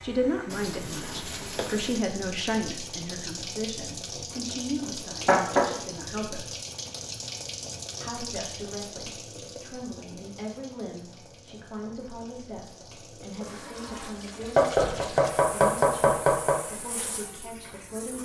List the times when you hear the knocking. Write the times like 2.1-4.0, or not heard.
4.8-5.7, 14.6-16.6.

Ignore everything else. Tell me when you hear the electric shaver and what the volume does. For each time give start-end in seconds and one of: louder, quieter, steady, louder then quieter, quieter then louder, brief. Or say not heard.
not heard.